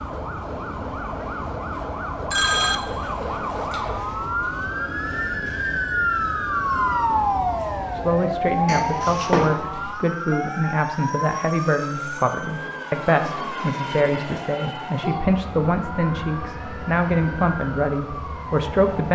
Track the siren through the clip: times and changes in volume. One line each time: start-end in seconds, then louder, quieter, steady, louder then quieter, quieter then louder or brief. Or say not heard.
0.0-19.1 louder then quieter.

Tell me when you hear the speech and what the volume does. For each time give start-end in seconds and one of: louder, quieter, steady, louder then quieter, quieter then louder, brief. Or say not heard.
8.0-19.1 steady.